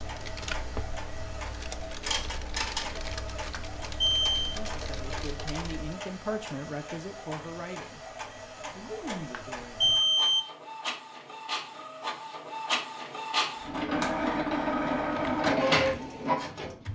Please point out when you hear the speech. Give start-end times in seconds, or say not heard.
4.5-8.0, 8.7-9.9.